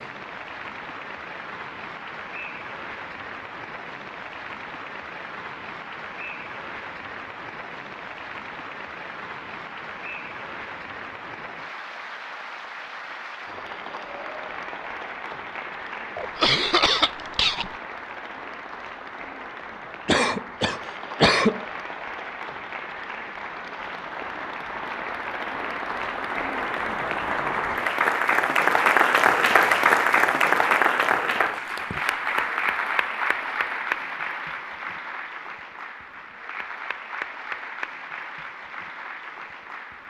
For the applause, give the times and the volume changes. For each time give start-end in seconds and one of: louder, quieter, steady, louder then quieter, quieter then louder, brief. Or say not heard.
0.0-40.0 louder then quieter.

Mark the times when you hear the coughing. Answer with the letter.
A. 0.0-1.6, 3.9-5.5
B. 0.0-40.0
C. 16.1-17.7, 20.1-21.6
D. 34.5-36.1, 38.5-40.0
C.